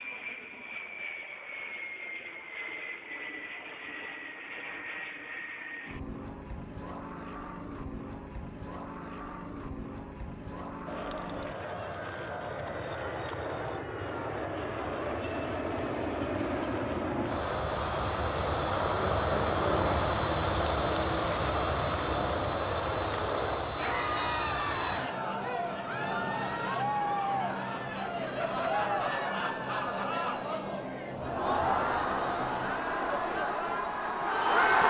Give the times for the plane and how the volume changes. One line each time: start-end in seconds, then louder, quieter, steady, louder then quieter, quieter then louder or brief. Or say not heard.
0.0-34.6 louder then quieter.